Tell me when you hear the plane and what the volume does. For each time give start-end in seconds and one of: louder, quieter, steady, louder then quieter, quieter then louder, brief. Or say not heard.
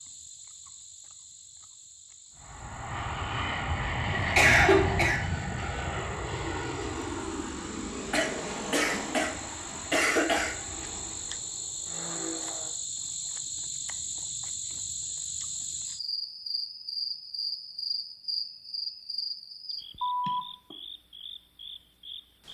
2.4-12.7 quieter.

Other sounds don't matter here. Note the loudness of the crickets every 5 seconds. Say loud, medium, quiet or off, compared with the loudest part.
quiet, medium, loud, loud, loud.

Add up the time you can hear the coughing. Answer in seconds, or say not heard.
4 s.